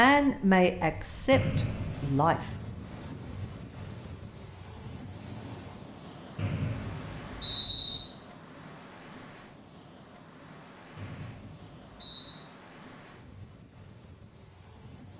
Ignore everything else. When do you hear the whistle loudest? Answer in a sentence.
The loudest moment of the whistle is at 8 seconds.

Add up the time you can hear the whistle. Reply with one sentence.
The whistle can be heard for 4 seconds in total.